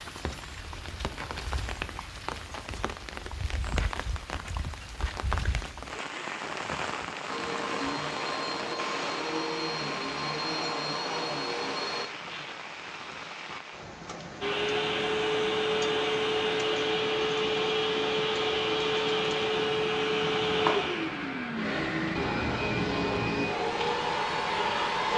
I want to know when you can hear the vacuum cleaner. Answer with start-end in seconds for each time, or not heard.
7.2-12.1, 14.4-25.1.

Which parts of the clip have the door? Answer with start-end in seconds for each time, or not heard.
not heard.